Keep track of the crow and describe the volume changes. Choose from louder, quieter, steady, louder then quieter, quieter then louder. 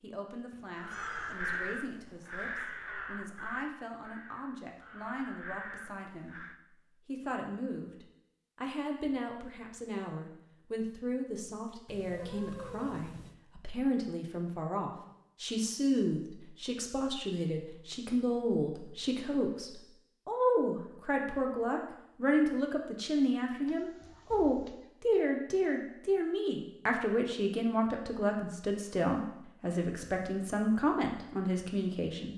quieter then louder.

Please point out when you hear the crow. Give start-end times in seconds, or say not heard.
0.8-6.5.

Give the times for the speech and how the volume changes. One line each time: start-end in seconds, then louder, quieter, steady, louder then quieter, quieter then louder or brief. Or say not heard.
0.0-32.3 louder.